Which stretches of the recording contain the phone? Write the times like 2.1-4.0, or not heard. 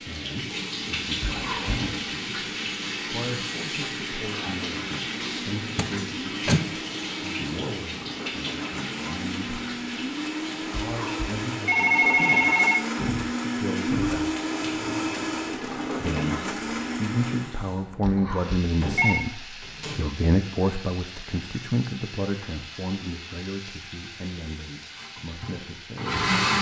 1.2-1.9, 10.9-12.8, 18.0-19.2.